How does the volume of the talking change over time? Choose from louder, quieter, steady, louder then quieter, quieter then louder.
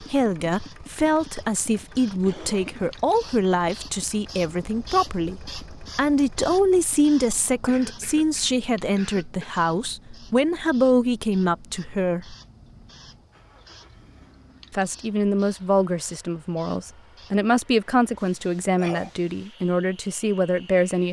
steady.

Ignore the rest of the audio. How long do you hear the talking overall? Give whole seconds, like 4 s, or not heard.
19 s.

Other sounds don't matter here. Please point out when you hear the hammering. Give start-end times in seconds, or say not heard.
not heard.